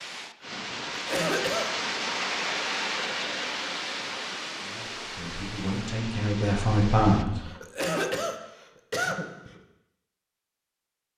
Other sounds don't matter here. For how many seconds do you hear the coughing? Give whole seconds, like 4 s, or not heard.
4 s.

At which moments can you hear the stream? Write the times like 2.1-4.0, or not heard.
0.0-7.2.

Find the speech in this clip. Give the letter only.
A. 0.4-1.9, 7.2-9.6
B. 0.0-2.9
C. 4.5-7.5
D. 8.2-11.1
C.